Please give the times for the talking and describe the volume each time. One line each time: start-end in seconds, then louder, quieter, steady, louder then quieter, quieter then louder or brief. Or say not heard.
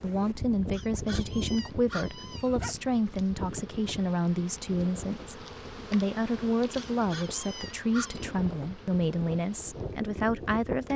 0.0-10.9 steady.